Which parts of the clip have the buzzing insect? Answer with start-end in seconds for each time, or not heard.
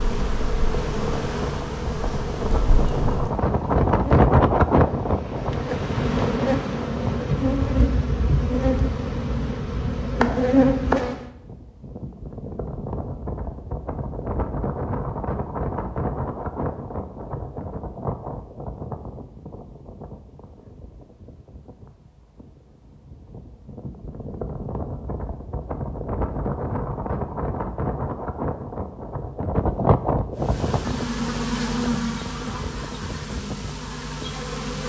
0.0-11.2, 30.4-34.8.